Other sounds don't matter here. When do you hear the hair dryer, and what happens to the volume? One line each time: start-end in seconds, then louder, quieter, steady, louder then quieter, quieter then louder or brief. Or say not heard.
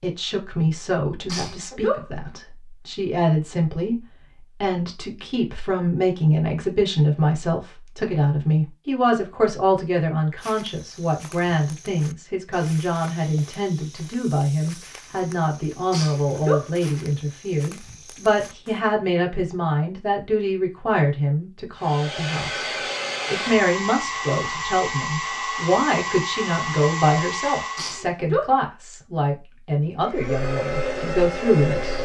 21.8-28.1 steady
29.9-32.0 brief.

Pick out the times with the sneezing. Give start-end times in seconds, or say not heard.
1.2-2.0, 15.9-16.6, 27.8-28.5.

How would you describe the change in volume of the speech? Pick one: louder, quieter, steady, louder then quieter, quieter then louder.
steady.